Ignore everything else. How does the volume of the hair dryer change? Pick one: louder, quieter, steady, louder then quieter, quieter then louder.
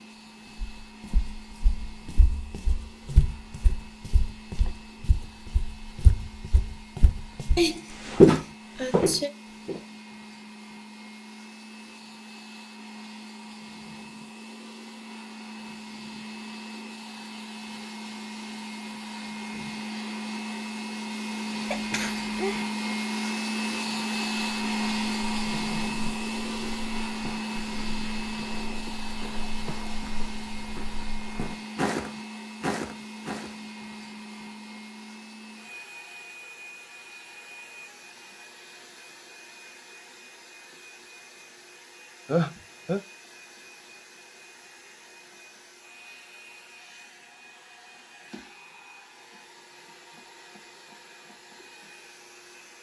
louder then quieter.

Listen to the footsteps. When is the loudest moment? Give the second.
8 s.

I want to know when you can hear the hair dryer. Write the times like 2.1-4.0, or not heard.
0.0-52.7.